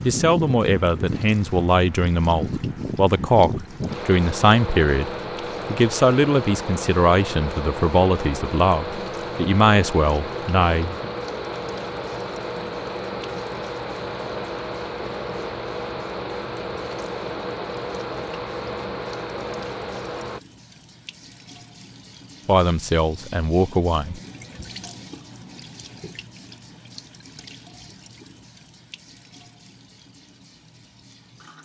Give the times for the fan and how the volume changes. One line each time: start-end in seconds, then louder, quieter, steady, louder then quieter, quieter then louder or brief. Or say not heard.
0.0-20.4 steady.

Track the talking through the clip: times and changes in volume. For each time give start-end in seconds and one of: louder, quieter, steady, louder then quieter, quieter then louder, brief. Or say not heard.
0.0-11.1 steady
22.4-24.2 brief.